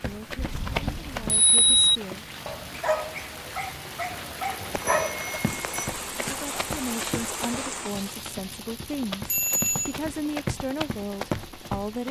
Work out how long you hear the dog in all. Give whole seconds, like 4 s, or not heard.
3 s.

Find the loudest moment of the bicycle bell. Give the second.
2 s.